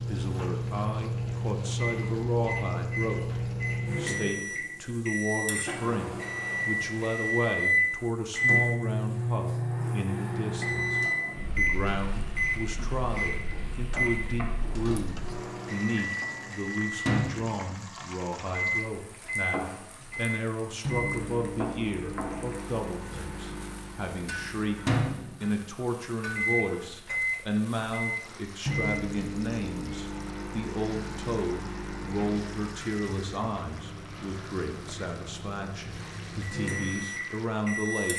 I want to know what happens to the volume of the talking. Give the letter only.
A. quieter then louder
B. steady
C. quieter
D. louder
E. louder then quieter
B.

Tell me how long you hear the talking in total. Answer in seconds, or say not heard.
38 s.